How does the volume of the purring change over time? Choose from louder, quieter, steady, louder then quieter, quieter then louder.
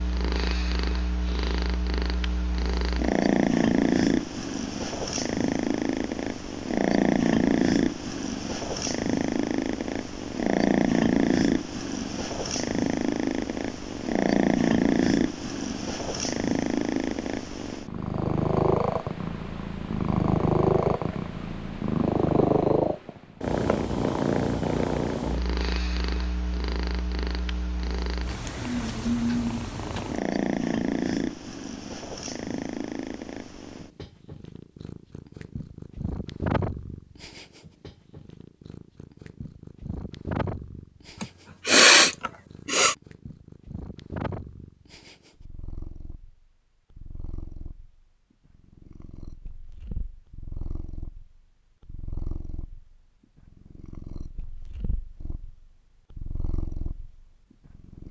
quieter.